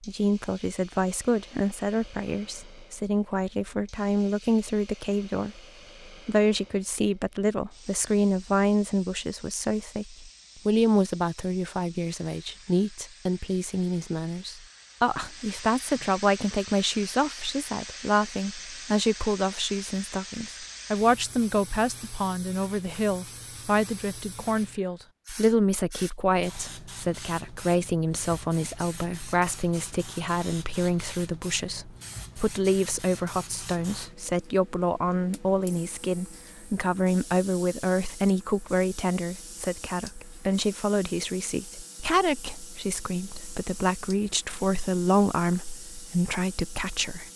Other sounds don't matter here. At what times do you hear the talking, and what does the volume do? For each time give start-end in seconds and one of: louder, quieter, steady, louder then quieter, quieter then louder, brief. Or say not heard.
0.1-47.3 steady.